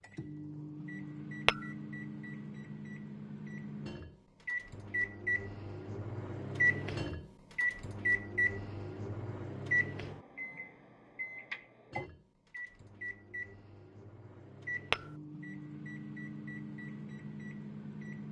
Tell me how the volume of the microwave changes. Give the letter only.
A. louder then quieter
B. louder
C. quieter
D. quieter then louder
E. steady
A.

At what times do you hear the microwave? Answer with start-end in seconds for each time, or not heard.
0.0-18.2.